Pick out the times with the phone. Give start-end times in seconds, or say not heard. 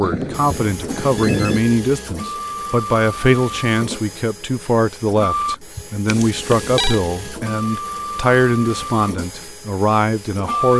0.0-1.6, 6.0-7.0.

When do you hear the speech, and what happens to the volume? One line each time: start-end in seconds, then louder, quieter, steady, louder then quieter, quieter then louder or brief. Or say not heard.
0.0-10.7 steady.